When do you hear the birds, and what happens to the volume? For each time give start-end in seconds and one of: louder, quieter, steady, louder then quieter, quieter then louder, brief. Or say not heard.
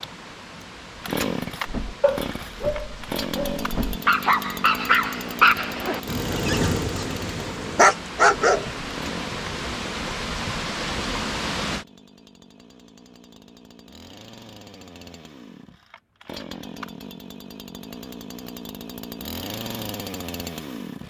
not heard.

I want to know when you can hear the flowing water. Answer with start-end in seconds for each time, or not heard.
0.0-11.8.